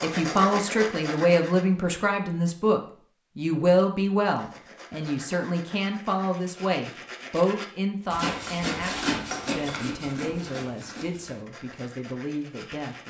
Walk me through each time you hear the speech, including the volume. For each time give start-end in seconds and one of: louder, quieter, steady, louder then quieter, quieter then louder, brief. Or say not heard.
0.0-13.0 quieter.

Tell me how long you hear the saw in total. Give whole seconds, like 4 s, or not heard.
10 s.